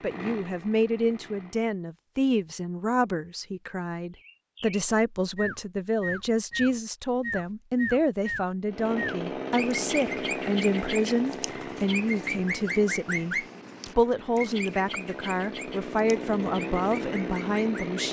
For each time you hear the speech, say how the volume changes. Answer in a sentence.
You can hear the speech from 0.0 to 18.0 s, at a steady volume.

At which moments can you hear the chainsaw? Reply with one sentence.
The chainsaw can be heard from 0.0 to 1.7 s and from 8.7 to 18.0 s.